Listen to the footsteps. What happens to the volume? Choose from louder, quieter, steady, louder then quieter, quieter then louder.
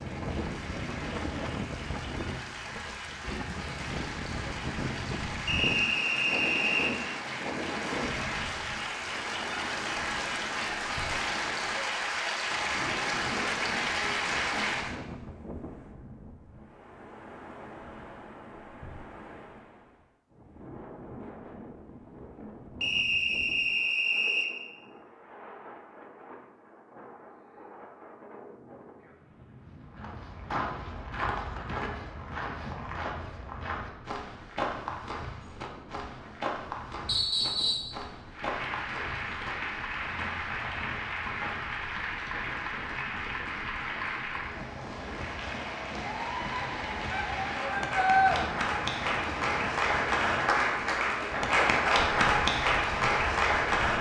quieter.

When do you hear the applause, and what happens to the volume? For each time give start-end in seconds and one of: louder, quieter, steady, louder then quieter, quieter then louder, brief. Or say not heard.
0.0-14.9 louder
38.3-53.9 louder.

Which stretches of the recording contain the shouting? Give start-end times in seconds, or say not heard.
47.1-48.4.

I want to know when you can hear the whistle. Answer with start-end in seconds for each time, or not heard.
5.5-7.0, 22.8-24.5, 37.0-37.9.